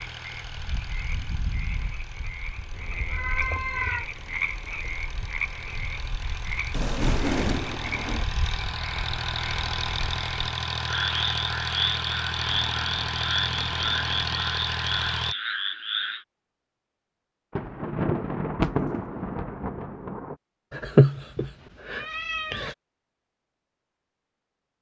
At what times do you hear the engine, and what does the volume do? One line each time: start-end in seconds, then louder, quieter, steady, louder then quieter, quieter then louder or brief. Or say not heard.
0.0-15.3 louder.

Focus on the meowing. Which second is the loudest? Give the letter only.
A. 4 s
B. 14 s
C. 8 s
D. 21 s
D.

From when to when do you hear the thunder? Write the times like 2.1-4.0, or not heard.
6.7-8.2, 17.6-20.4.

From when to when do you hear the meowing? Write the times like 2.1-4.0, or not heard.
2.7-4.0, 12.4-14.5, 20.7-22.8.